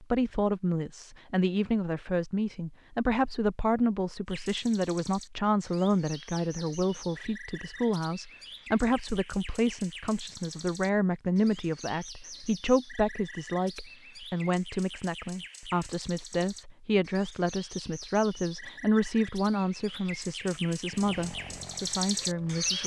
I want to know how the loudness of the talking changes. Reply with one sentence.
The loudness of the talking stays about the same.